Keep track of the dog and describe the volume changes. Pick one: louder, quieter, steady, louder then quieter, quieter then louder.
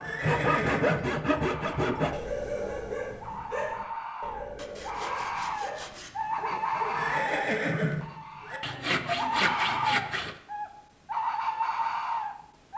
quieter.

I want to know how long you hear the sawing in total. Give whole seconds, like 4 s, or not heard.
6 s.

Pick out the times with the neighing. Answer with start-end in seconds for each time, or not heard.
0.0-1.1, 6.9-8.6.